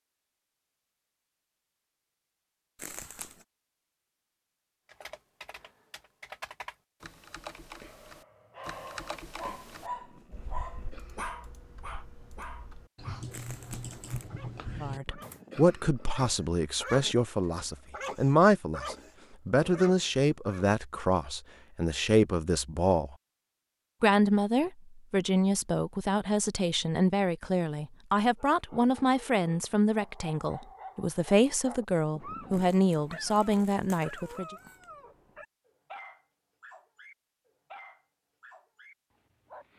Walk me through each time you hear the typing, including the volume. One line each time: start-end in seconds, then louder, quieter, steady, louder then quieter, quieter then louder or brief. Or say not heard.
4.8-15.4 quieter then louder.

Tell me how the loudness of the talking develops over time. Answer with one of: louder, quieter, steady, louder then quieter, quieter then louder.
steady.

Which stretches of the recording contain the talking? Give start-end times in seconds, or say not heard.
14.8-23.1, 24.0-34.5.